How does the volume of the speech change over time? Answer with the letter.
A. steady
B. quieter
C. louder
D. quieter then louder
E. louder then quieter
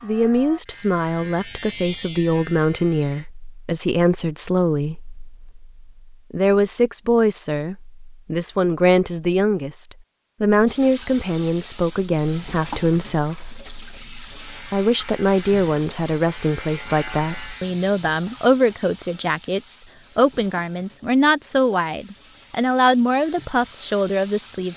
A.